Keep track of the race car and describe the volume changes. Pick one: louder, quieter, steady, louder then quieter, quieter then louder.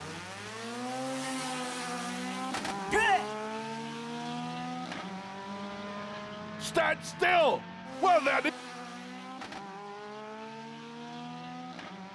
quieter.